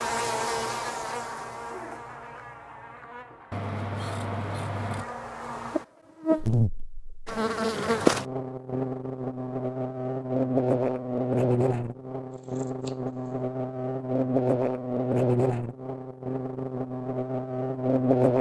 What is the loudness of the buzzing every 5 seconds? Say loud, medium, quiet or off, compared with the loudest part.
medium, loud, loud, loud.